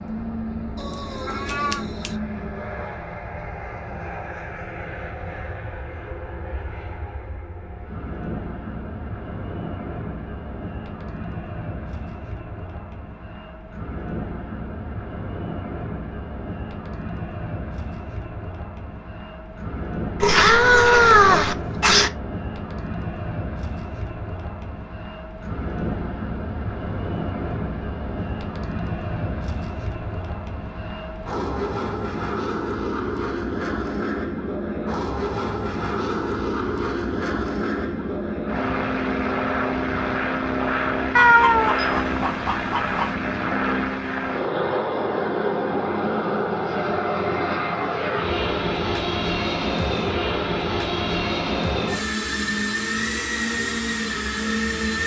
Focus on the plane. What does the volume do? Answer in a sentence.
The loudness of the plane goes up.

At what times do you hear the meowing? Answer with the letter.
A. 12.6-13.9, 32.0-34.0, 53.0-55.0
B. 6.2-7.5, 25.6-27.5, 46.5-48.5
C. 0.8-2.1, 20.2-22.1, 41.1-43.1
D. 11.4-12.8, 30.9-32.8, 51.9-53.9
C.